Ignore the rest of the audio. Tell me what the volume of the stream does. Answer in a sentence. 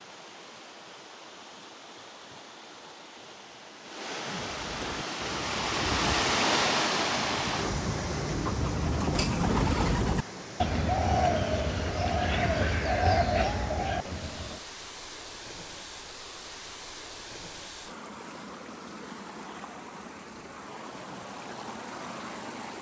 The loudness of the stream goes up, then down.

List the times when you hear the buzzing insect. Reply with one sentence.
You can't hear the buzzing insect here.